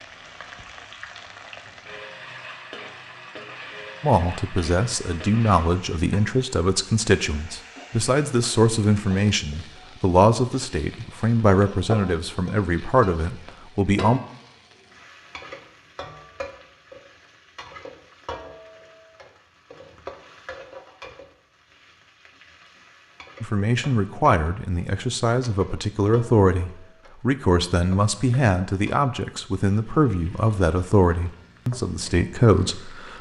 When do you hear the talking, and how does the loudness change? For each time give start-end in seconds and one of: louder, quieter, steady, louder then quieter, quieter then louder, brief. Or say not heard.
4.0-14.2 steady
23.4-33.1 steady.